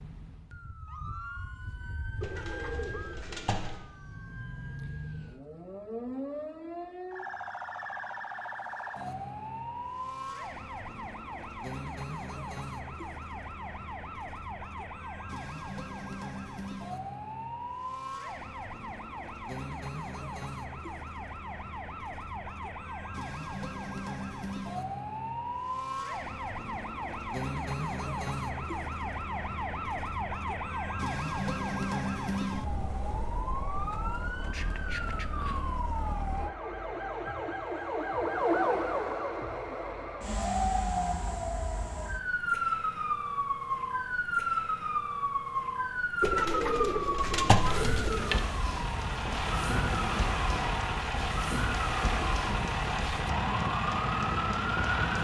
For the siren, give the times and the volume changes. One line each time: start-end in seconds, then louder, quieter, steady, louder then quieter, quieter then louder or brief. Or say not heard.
0.0-55.1 louder.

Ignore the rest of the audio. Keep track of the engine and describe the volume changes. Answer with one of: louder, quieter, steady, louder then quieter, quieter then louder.
steady.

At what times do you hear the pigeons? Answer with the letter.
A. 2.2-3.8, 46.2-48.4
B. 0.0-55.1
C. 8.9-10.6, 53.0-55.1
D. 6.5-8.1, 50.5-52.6
A.